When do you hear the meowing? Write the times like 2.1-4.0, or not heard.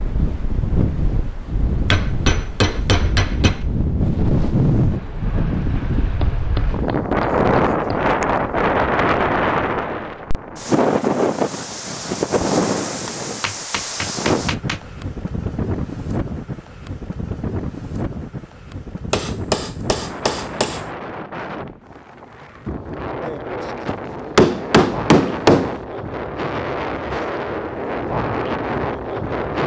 not heard.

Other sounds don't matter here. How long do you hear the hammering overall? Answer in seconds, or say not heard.
10 s.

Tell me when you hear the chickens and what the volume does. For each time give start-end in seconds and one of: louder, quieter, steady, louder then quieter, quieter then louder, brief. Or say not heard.
not heard.